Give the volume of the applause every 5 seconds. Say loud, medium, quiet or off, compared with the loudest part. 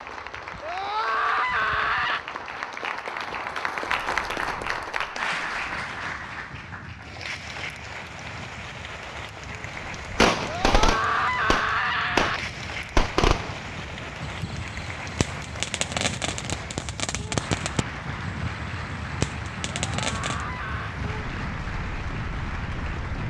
loud, loud, medium, medium, medium.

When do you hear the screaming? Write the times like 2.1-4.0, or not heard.
0.6-2.2, 10.4-12.4, 19.9-20.9.